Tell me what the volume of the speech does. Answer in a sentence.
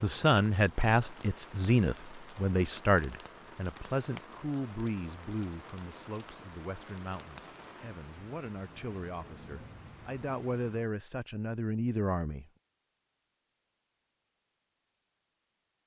The loudness of the speech goes down, then up.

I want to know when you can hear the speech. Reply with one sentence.
The speech can be heard from 0.0 to 12.4 s.